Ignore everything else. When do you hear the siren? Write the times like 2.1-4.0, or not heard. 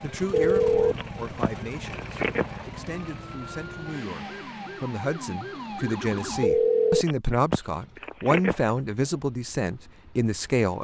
0.0-6.5.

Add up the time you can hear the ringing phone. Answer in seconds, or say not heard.
5 s.